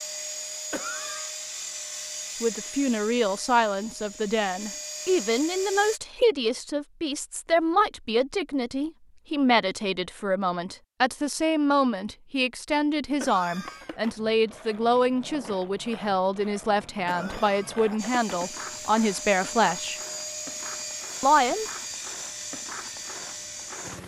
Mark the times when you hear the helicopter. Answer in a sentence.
The helicopter can be heard from 0.0 to 6.0 s and from 17.9 to 24.0 s.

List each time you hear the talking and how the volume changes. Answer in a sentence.
You can hear the talking from 2.4 to 20.0 s, at a steady volume; and briefly from 21.2 to 21.6 s.